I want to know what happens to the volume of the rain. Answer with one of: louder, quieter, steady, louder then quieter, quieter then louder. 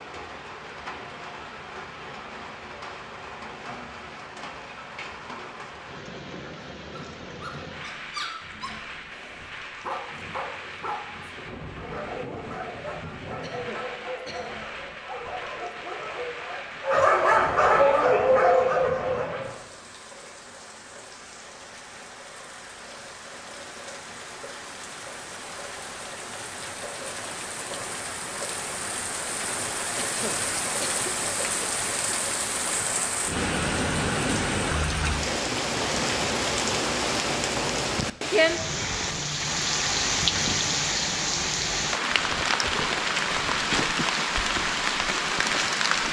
louder.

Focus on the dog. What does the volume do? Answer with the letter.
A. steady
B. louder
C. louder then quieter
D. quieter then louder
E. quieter
B.